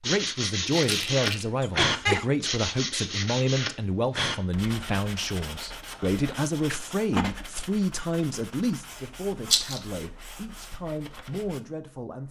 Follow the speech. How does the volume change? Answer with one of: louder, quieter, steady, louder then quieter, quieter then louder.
quieter.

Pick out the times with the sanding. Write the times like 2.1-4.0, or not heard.
0.0-11.6.